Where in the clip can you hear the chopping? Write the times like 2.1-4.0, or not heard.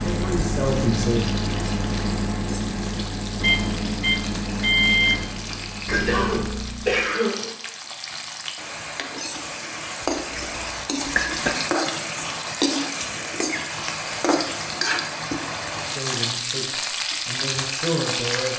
not heard.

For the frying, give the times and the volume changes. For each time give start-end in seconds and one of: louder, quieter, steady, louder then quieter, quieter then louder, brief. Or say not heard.
0.0-18.5 louder.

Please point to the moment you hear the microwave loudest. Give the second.
5 s.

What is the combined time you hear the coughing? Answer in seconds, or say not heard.
3 s.